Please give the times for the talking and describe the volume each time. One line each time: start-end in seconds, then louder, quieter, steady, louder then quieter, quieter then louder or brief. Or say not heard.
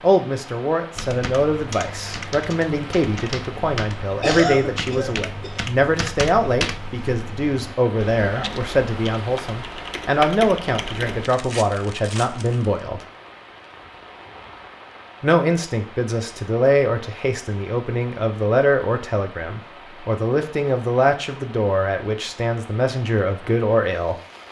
0.0-13.1 steady
15.2-24.1 steady.